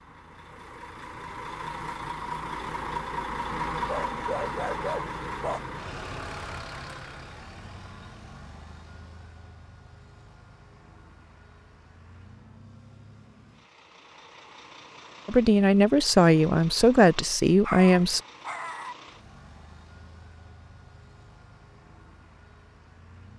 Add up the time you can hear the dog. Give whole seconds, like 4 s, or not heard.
3 s.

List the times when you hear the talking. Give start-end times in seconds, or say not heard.
15.2-18.2.